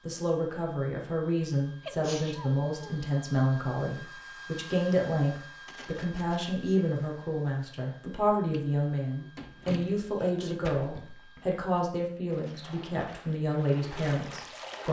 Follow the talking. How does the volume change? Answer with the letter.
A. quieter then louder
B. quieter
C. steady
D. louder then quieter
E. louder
C.